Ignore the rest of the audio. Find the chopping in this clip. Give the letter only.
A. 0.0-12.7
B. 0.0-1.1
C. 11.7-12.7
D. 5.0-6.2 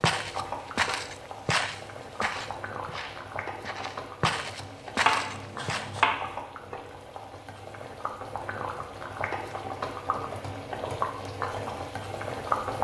D.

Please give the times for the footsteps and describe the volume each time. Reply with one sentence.
The footsteps can be heard from 0.0 to 5.9 s, getting quieter then louder.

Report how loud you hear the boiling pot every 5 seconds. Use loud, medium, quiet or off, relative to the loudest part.
medium, medium, loud.